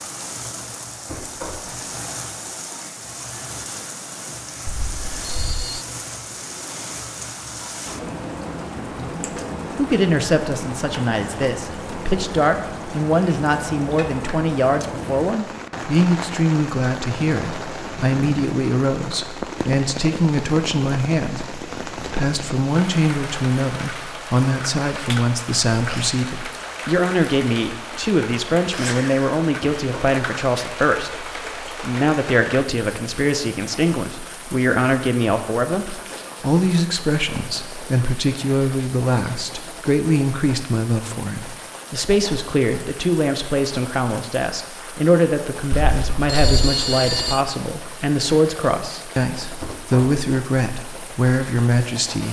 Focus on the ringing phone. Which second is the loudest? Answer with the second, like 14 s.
47 s.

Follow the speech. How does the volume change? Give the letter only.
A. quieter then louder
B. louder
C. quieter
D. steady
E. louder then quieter
D.